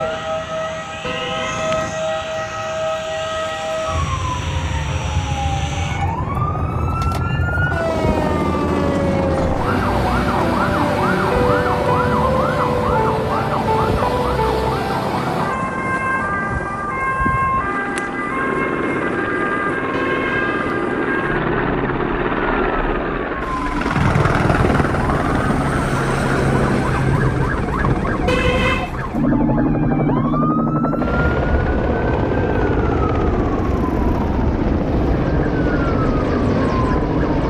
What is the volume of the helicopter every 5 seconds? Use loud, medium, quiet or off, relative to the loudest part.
quiet, medium, medium, medium, loud, loud, loud, loud.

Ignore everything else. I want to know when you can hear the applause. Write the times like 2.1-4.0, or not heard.
not heard.